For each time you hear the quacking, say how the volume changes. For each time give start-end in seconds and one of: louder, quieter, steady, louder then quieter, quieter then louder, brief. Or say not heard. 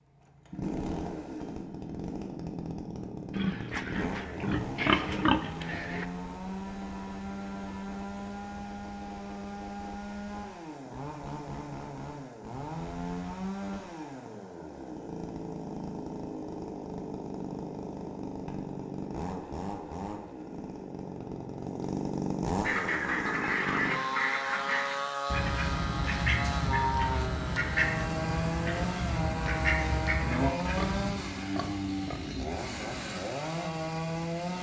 22.6-31.1 steady.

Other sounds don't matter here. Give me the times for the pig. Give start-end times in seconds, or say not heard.
3.4-6.0, 30.6-32.2.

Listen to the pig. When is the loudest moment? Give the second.
5 s.